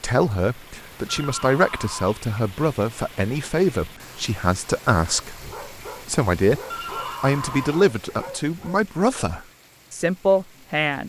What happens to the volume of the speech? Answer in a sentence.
The loudness of the speech stays about the same.